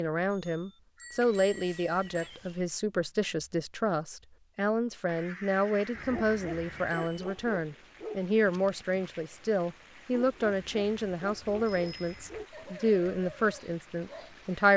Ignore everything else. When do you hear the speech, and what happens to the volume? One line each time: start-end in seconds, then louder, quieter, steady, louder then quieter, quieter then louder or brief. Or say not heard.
0.0-14.7 steady.